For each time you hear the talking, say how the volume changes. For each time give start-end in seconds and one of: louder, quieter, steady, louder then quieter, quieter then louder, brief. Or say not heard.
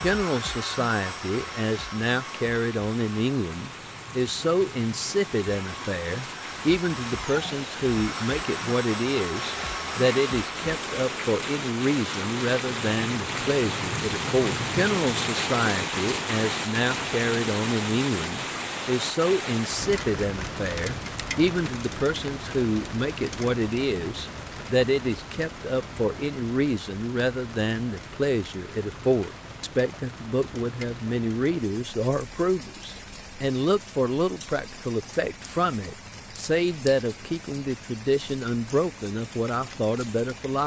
0.0-40.6 steady.